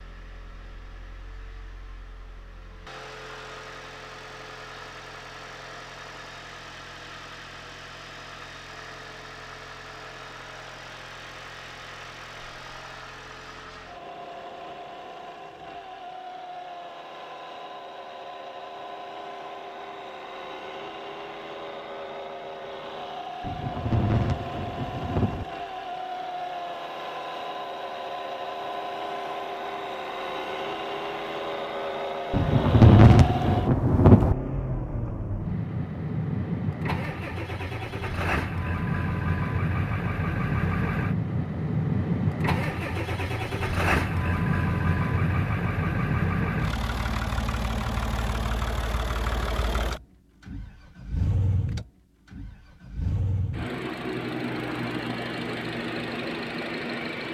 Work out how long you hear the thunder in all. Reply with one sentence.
You can hear the thunder for 4 seconds altogether.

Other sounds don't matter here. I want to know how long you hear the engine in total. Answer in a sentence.
The engine can be heard for 57 seconds in total.